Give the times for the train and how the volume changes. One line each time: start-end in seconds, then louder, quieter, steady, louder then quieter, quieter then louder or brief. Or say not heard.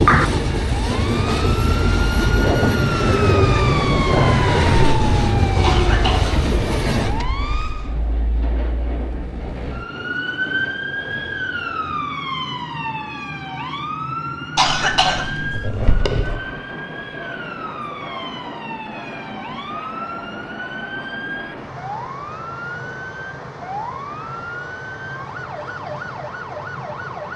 0.0-27.3 quieter.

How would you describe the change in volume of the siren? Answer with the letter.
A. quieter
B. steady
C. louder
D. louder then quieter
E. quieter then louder
A.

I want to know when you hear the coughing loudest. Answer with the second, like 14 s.
15 s.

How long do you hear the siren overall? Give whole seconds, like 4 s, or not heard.
27 s.